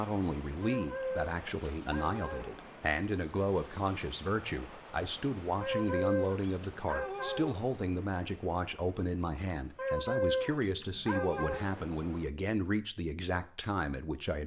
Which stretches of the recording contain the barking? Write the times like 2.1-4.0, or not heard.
0.6-2.5, 5.6-7.6, 9.8-11.7.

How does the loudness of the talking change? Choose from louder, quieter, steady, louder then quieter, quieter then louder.
steady.